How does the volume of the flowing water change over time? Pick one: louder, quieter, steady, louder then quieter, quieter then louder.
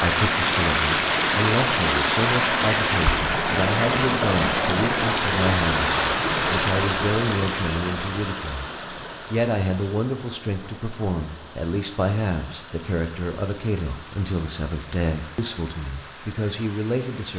quieter.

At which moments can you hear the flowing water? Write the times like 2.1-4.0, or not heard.
0.0-17.3.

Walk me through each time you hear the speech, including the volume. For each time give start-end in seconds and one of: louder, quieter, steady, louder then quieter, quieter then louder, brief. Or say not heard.
0.0-8.7 steady
9.3-17.3 steady.